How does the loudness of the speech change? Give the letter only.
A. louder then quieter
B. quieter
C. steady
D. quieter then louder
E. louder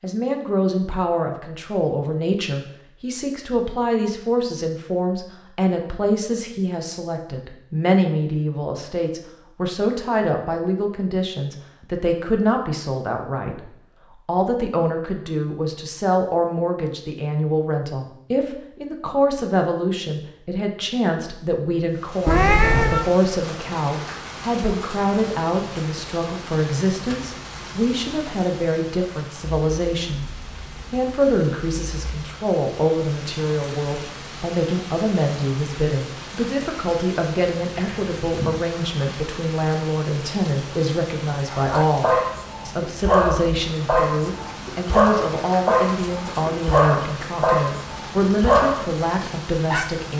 C.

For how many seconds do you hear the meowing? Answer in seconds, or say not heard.
2 s.